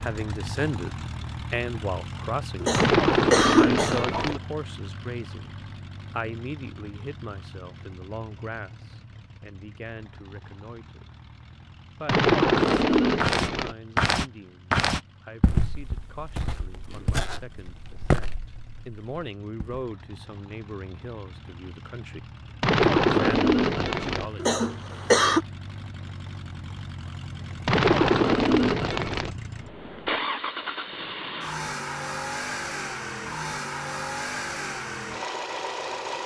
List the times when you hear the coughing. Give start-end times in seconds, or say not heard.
2.6-4.3, 24.4-25.4.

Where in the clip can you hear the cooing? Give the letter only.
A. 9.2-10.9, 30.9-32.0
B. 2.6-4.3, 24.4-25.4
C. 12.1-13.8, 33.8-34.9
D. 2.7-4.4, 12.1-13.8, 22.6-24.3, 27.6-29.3
D.